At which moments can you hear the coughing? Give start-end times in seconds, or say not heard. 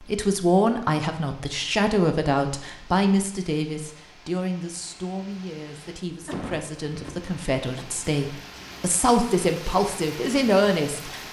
6.2-7.9.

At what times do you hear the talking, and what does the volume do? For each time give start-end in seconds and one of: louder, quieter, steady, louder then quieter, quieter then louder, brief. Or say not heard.
0.0-11.2 quieter then louder.